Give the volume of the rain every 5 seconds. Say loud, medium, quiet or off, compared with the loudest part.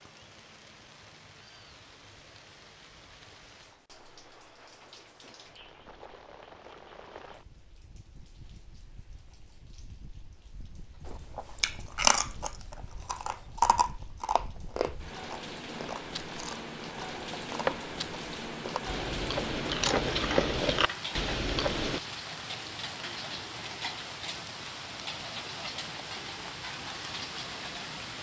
quiet, quiet, quiet, loud, loud, loud.